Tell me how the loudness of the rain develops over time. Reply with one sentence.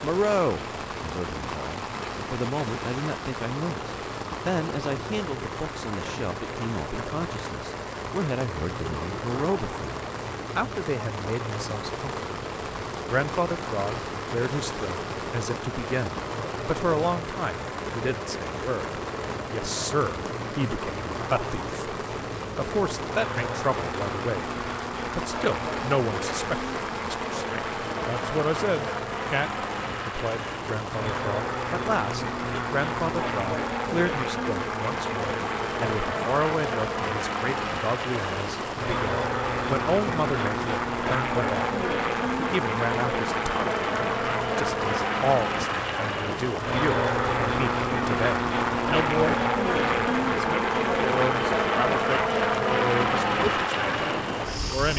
The volume of the rain stays about the same.